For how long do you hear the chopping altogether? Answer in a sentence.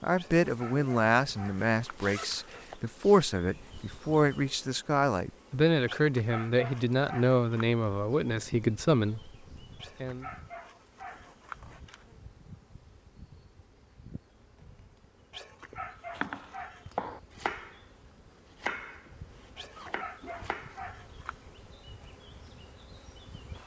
The chopping can be heard for 4 seconds in total.